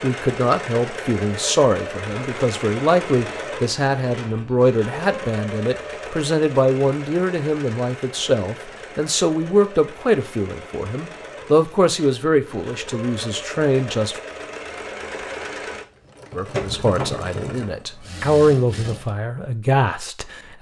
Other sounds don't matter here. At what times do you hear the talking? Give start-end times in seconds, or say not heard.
0.0-14.2, 16.4-20.5.